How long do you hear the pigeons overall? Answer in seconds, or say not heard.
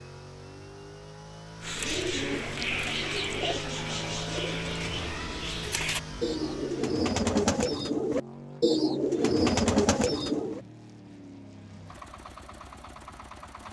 9 s.